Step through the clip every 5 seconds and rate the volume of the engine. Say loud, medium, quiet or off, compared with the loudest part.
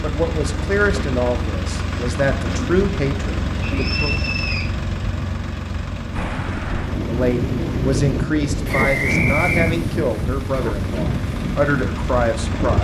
loud, medium, loud.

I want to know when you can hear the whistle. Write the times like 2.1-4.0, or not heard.
3.6-4.7, 8.7-9.7.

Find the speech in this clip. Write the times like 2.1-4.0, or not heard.
0.0-4.2, 7.0-12.8.